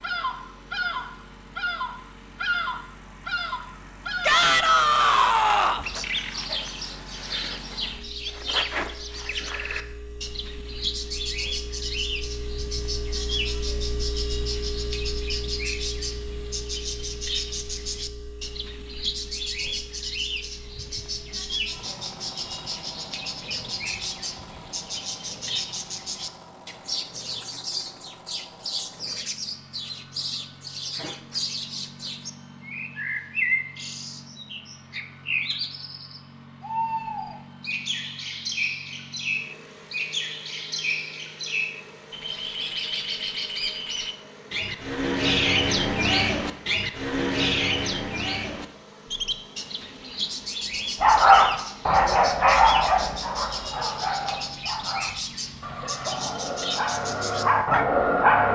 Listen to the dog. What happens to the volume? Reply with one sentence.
The loudness of the dog goes down, then up.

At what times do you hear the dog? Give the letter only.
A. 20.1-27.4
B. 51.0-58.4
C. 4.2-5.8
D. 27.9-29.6
B.